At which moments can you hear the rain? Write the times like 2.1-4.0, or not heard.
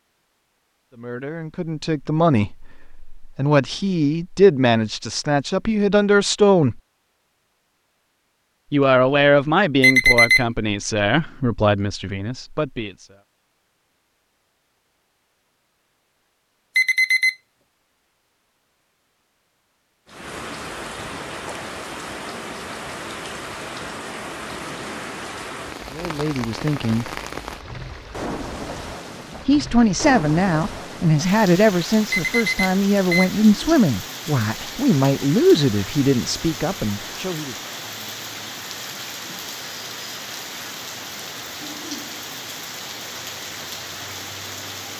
20.1-44.9.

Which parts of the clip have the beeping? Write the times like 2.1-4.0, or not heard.
9.8-10.4, 16.8-17.4, 32.1-33.3.